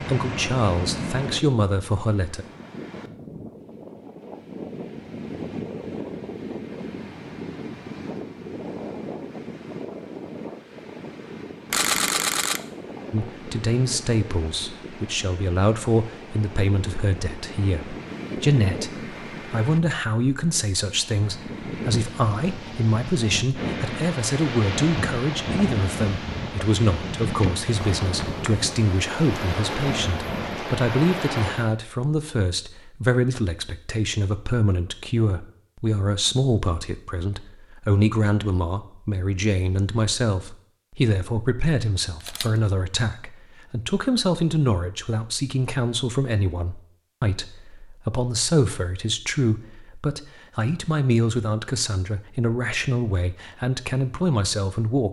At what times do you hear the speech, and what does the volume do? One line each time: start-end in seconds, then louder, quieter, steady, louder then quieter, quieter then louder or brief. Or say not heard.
0.0-2.5 brief
13.1-55.0 steady.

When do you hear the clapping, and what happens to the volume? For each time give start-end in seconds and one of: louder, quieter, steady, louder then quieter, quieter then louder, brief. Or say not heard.
not heard.